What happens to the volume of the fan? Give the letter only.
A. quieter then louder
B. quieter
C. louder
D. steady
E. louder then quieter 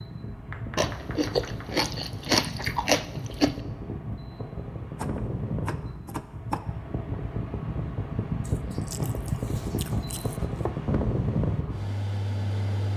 C.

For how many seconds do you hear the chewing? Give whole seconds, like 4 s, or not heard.
5 s.